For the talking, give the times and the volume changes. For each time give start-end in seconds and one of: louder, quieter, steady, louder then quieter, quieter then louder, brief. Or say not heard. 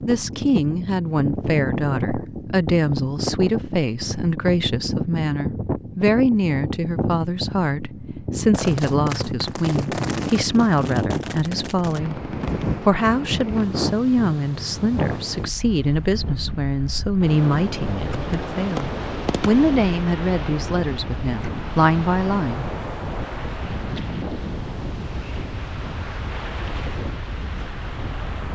0.1-22.6 steady.